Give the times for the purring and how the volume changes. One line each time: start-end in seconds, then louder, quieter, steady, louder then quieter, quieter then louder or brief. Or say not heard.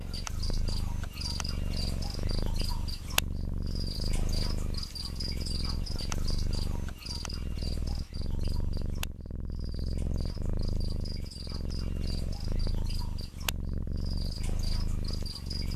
0.0-15.7 steady.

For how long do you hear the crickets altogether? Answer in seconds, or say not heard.
16 s.